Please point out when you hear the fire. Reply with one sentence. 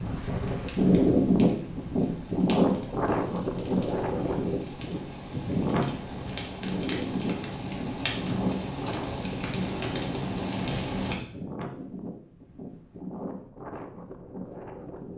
The fire can be heard from 0.0 to 11.2 s.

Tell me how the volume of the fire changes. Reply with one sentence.
The loudness of the fire goes up.